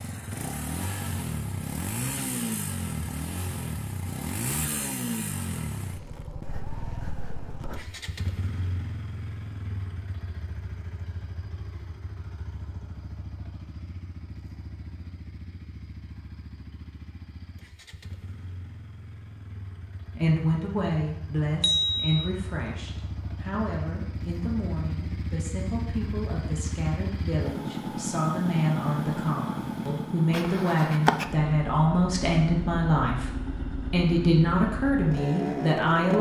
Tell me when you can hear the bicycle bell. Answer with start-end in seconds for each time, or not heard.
21.6-22.2.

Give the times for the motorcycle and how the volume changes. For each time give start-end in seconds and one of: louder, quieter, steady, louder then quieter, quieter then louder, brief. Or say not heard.
0.0-36.1 quieter then louder.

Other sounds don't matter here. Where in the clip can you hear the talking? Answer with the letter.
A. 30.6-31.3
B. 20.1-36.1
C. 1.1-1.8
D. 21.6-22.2
B.